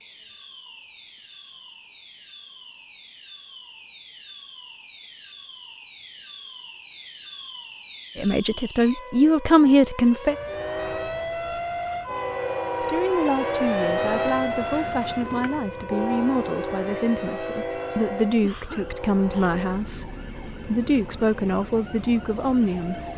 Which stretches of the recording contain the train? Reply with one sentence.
The train can be heard from 10.2 to 23.1 s.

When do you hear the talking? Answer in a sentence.
You can hear the talking from 8.2 to 10.3 s and from 12.8 to 23.0 s.